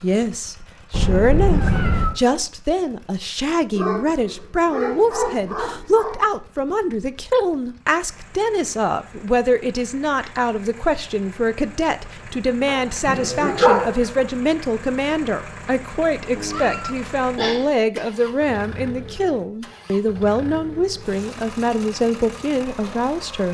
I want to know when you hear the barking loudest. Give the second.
14 s.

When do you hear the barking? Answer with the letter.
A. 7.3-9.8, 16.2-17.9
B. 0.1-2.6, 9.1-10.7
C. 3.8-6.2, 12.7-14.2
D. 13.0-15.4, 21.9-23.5
C.